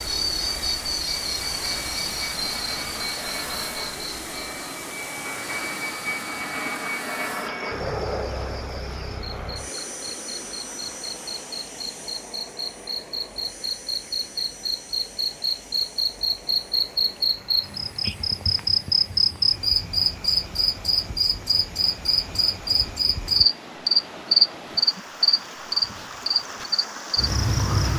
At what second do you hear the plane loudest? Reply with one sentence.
The loudest moment of the plane is at 8 seconds.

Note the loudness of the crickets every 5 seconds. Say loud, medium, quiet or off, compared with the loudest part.
medium, quiet, medium, loud, loud, loud.